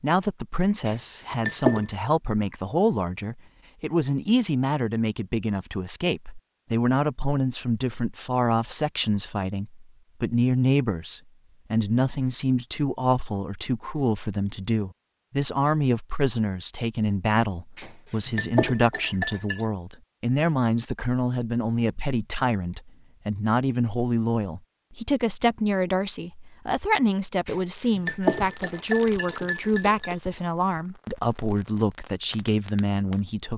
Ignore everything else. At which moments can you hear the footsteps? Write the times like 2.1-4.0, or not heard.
not heard.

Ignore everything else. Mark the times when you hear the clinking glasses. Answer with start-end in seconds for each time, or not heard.
0.8-1.9, 17.8-19.6, 27.4-30.1.